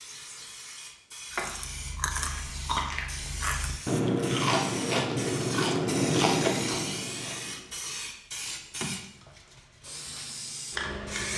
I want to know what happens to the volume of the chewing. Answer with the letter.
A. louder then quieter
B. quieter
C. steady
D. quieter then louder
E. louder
E.